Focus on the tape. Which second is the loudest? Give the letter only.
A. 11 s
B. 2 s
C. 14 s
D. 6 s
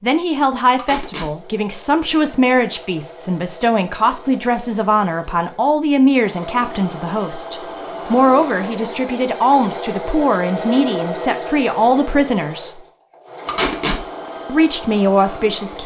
C.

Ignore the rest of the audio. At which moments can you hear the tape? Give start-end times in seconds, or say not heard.
0.8-1.3, 13.4-14.0.